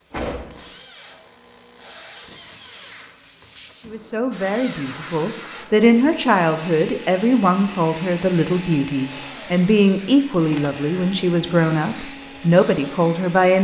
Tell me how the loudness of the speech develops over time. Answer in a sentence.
The loudness of the speech stays about the same.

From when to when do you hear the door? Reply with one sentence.
The door can be heard from 0.1 to 0.7 s.